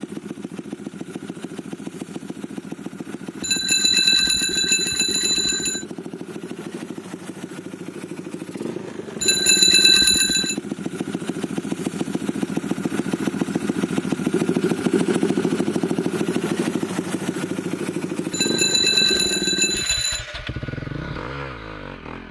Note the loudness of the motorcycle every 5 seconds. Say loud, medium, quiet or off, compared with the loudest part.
medium, medium, loud, loud, medium.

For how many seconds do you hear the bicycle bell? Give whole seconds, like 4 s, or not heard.
6 s.